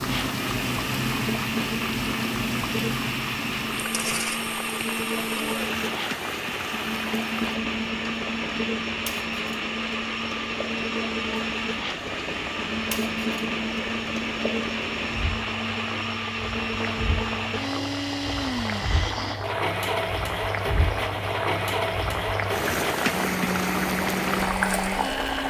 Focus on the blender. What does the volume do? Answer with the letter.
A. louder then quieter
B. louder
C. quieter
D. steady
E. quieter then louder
D.